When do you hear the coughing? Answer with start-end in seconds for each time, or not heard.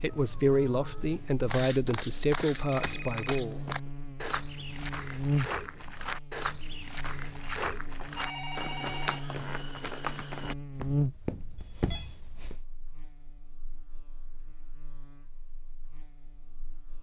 not heard.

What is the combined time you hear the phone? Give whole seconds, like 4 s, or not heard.
4 s.